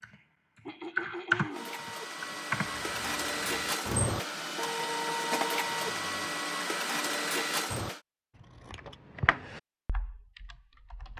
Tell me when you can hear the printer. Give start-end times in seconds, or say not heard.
1.5-8.0.